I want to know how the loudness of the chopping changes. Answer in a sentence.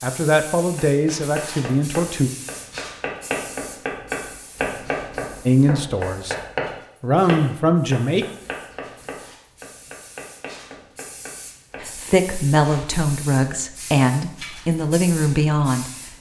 The volume of the chopping goes up, then down.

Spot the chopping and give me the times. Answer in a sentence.
The chopping can be heard from 0.8 to 11.9 s.